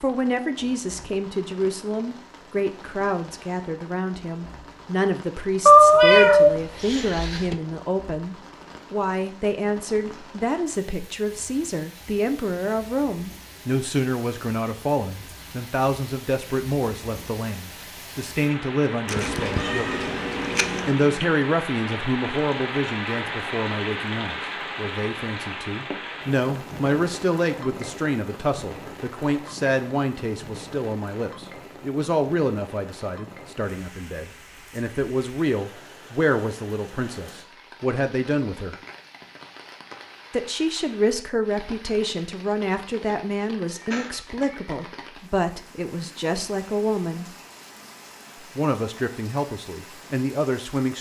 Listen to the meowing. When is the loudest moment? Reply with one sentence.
The loudest moment of the meowing is at 6 seconds.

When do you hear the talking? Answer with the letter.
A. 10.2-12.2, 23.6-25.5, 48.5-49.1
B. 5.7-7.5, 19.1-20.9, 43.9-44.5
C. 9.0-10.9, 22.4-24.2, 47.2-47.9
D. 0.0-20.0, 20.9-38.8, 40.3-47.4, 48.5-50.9
D.